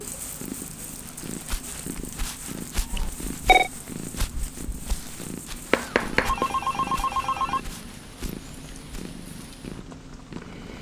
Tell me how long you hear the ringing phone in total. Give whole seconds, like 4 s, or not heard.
3 s.